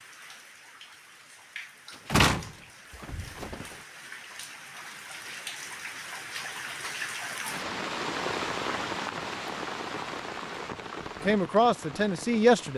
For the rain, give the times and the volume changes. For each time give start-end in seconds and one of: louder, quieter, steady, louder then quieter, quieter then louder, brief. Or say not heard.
0.0-12.7 louder then quieter.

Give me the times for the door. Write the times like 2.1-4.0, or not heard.
2.0-3.8.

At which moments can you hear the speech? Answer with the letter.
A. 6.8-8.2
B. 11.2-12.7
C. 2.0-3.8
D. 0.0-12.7
B.